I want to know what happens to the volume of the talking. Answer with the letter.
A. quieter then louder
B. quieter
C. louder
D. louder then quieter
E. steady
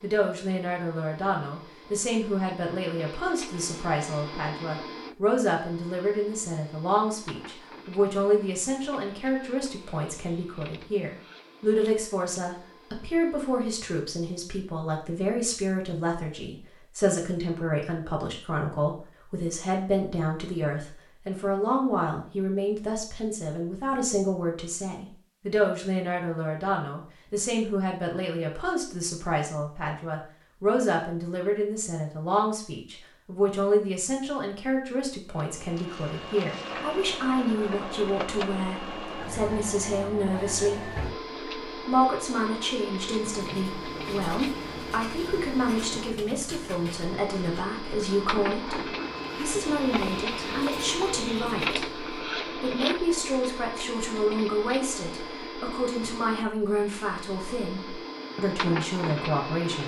E.